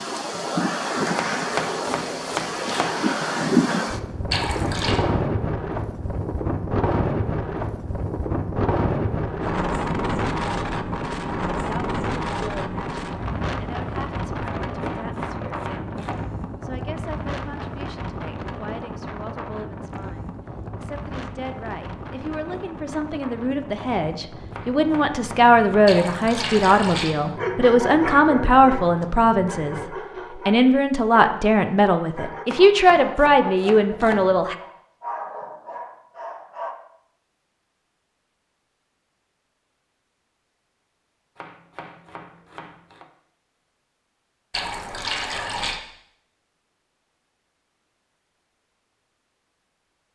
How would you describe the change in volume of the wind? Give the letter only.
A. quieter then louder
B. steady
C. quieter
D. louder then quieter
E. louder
C.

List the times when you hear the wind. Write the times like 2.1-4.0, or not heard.
0.0-29.9.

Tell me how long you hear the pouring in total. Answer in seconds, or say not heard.
3 s.